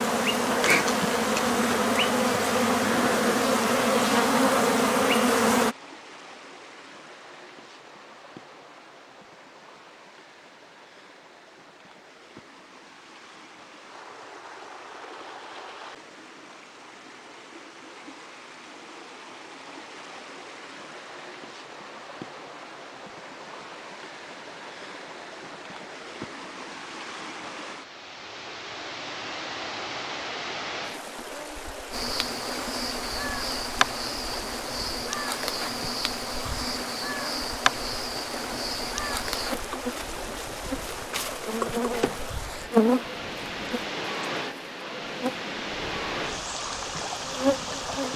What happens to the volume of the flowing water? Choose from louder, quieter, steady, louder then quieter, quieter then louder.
louder.